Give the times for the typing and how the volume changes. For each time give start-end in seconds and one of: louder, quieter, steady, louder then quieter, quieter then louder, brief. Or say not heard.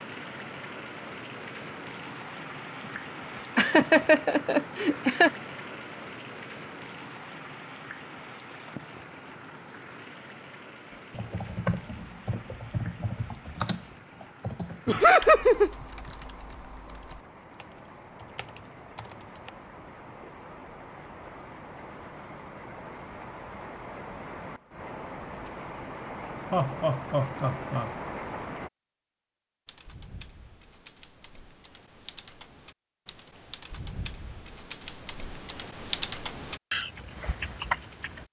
10.9-19.5 quieter
29.6-38.2 louder.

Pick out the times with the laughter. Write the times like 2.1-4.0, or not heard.
3.5-5.3, 14.8-15.7, 26.5-27.9.